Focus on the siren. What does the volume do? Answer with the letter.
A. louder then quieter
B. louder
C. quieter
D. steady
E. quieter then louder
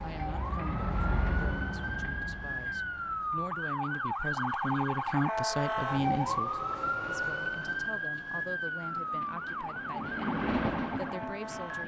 A.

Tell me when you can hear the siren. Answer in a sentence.
The siren can be heard from 0.0 to 11.8 s.